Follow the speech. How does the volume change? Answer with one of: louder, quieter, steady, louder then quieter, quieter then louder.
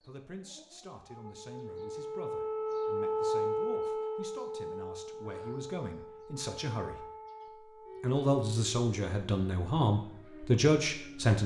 louder.